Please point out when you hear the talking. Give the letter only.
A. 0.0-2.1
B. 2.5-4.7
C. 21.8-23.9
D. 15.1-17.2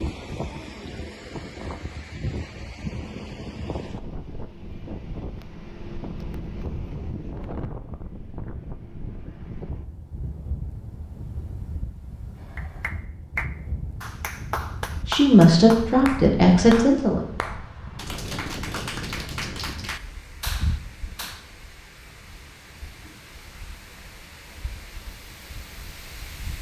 D.